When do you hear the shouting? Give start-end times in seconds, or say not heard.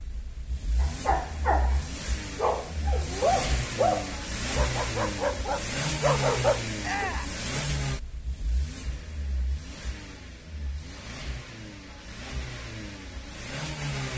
6.8-7.3.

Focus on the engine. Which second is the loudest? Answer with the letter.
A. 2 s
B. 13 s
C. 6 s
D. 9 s
C.